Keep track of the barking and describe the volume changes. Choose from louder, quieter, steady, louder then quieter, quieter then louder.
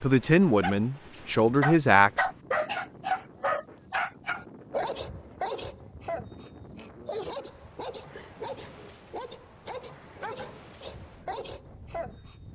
quieter.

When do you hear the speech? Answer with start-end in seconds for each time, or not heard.
0.0-2.3.